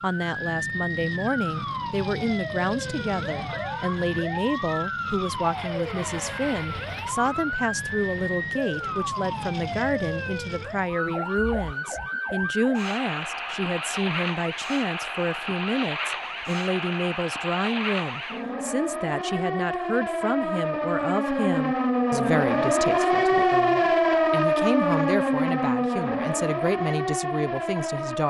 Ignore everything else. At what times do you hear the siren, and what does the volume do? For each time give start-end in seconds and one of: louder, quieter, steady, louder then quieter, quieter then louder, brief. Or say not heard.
0.0-28.2 louder.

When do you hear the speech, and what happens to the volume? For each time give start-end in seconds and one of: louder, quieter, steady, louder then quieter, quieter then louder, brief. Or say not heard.
0.0-28.2 steady.